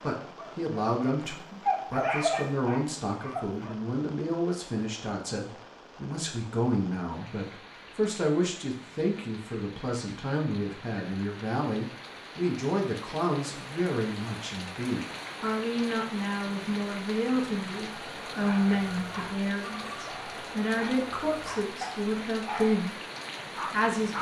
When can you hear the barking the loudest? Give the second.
2 s.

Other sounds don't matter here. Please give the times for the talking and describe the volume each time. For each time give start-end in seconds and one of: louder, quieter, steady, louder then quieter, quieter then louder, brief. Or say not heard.
0.0-22.9 steady
23.7-24.1 brief.